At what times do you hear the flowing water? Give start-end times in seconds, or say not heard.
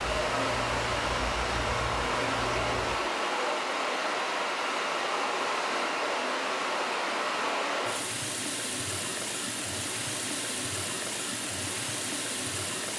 0.0-12.9.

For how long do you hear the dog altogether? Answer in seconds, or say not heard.
not heard.